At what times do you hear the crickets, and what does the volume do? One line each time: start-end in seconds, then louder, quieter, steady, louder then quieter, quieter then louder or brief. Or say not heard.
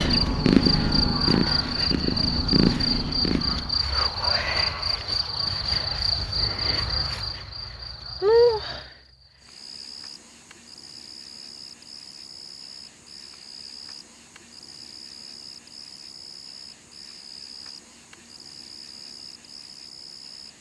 0.0-20.5 quieter.